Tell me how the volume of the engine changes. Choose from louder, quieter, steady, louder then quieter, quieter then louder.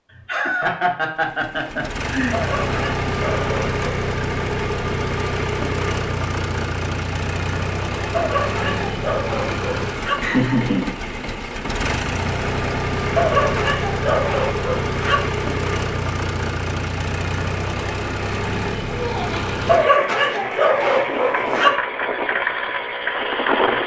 steady.